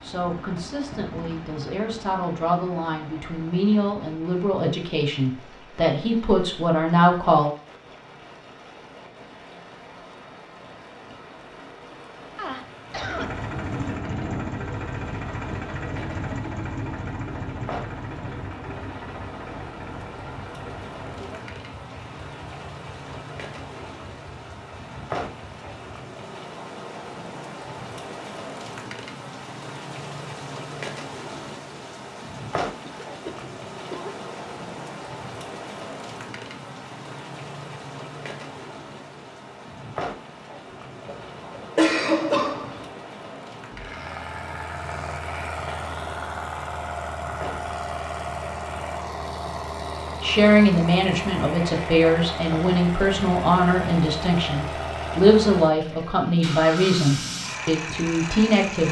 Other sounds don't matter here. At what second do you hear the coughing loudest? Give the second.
42 s.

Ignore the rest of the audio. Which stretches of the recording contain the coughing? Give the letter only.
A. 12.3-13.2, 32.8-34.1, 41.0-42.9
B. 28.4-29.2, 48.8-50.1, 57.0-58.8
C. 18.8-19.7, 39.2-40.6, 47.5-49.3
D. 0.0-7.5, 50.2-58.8
A.